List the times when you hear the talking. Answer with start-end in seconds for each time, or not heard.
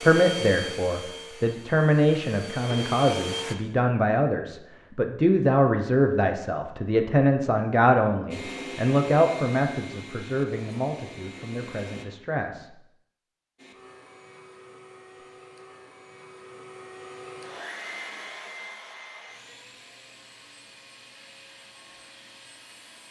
0.0-12.7.